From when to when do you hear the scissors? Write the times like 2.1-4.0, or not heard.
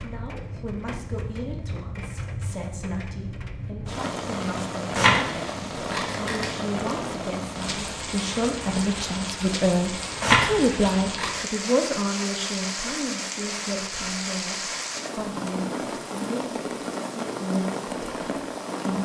5.0-6.5, 10.2-11.4.